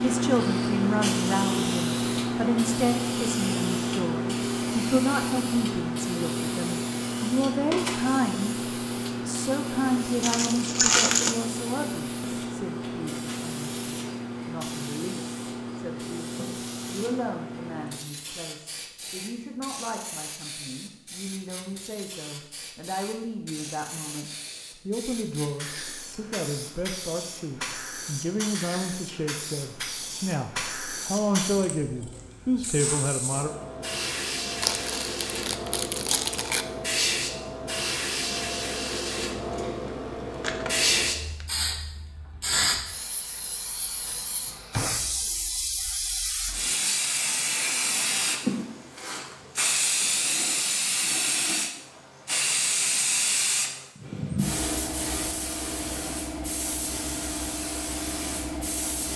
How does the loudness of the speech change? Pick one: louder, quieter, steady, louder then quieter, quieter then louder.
quieter then louder.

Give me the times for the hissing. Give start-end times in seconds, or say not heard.
0.0-59.1.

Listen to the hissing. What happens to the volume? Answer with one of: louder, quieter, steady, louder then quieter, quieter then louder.
quieter then louder.